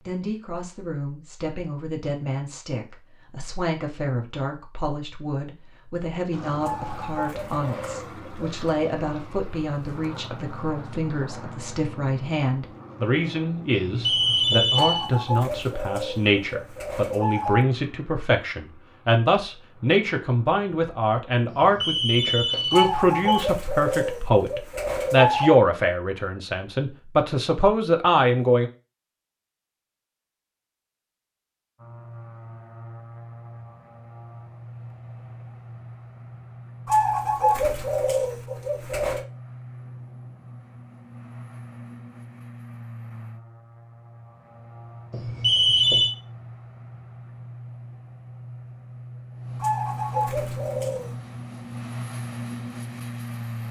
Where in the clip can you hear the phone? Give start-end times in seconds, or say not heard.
13.7-15.1, 21.4-23.2, 45.1-46.1.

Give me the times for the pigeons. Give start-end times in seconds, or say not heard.
6.6-8.7, 14.8-17.6, 22.7-25.6, 36.9-39.2, 49.6-51.1.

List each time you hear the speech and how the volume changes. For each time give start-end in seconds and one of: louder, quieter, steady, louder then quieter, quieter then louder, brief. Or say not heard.
0.1-28.7 louder.